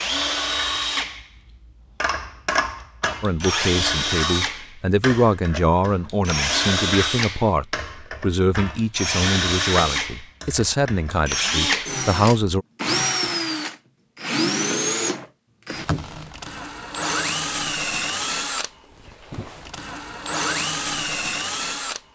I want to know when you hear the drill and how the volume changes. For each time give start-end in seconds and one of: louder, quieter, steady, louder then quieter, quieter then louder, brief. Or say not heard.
0.0-22.0 steady.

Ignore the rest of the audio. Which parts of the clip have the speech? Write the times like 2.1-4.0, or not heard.
3.2-12.7.